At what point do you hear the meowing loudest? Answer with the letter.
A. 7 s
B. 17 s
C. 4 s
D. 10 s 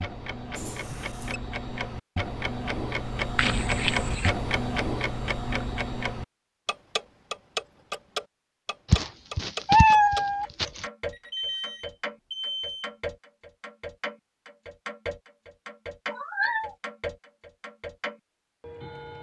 D.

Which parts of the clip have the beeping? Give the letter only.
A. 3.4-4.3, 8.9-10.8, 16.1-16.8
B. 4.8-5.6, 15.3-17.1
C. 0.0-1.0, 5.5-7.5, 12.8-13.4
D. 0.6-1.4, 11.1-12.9
D.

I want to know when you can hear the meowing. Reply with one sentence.
You can hear the meowing from 3.4 to 4.3 s, from 8.9 to 10.8 s and from 16.1 to 16.8 s.